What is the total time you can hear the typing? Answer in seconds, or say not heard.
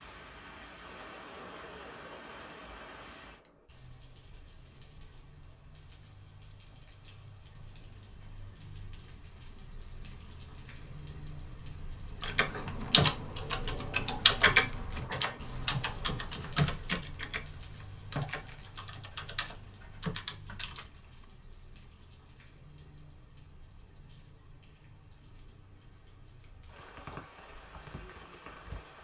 9 s.